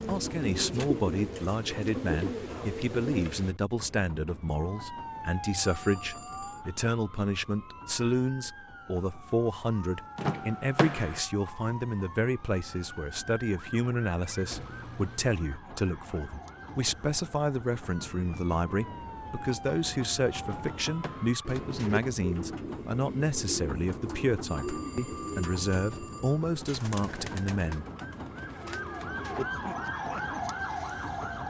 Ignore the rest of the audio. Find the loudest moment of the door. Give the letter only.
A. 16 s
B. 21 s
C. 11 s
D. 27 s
C.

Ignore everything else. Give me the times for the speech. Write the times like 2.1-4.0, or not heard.
0.1-27.9.